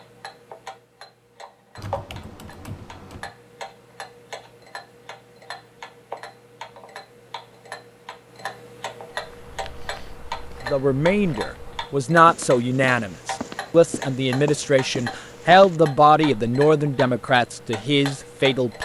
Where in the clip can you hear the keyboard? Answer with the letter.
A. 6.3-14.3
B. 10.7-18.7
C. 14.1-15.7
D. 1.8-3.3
D.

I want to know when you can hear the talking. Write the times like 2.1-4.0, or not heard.
10.7-18.7.